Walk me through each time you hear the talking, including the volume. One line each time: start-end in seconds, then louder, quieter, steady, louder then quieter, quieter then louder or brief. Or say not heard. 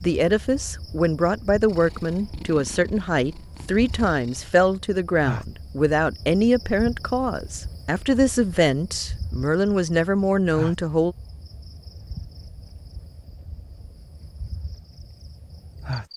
0.0-11.2 steady.